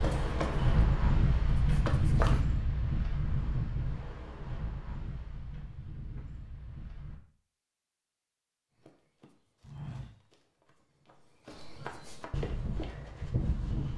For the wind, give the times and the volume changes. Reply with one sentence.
The wind can be heard from 0.0 to 7.2 s, getting quieter.